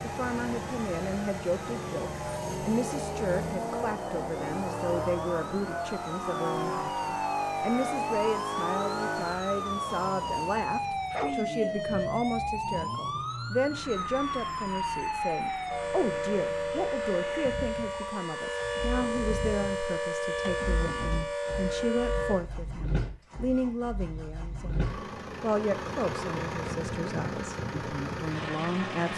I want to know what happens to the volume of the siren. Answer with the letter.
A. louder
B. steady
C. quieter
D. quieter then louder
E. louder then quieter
A.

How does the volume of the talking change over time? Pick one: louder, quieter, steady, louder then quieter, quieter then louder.
steady.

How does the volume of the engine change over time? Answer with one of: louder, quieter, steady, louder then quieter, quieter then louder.
quieter then louder.